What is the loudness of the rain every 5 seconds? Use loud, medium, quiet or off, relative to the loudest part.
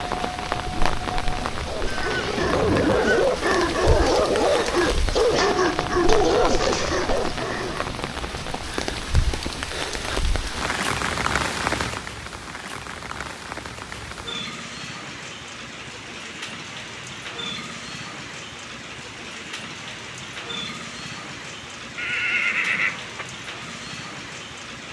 loud, loud, loud, medium, medium.